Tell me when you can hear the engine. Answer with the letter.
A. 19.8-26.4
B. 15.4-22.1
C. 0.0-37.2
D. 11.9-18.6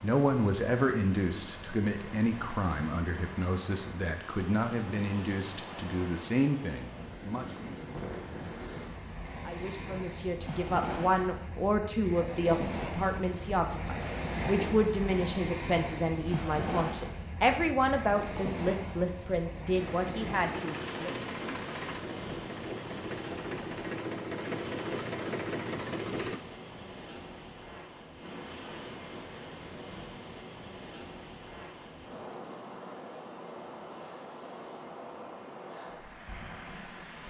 A.